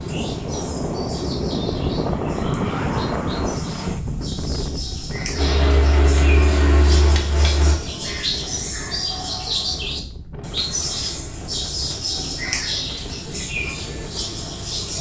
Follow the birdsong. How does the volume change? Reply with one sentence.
The loudness of the birdsong goes up.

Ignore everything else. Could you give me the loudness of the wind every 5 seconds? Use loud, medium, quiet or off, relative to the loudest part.
loud, medium, quiet.